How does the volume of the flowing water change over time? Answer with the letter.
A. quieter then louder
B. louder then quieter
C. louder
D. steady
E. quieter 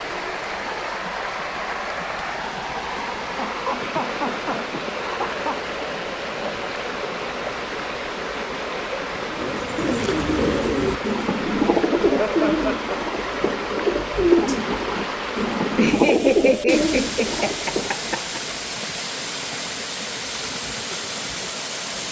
D.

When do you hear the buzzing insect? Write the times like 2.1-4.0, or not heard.
not heard.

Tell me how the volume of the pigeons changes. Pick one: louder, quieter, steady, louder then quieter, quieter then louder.
steady.